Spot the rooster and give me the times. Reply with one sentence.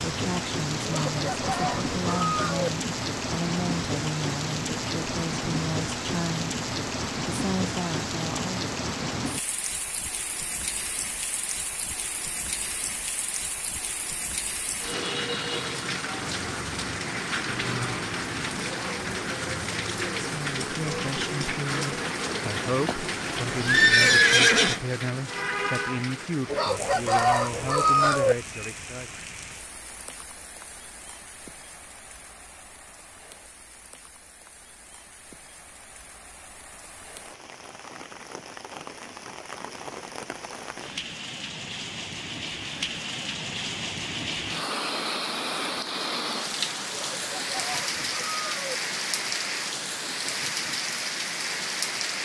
The rooster can be heard from 0.8 to 2.7 s, from 26.4 to 28.4 s and from 46.9 to 48.8 s.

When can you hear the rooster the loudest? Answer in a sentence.
The volume of the rooster peaks at 28 seconds.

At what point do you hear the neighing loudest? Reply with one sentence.
The loudest moment of the neighing is at 24 seconds.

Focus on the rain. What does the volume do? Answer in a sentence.
The volume of the rain goes down, then up.